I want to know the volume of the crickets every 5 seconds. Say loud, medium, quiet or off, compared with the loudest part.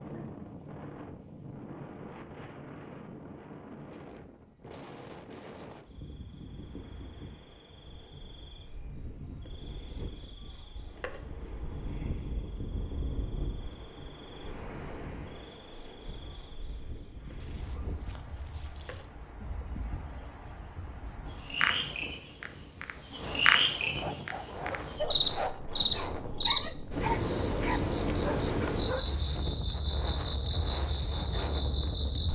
quiet, quiet, quiet, quiet, loud, loud, loud.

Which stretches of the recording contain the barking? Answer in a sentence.
The barking can be heard from 23.8 to 29.4 s.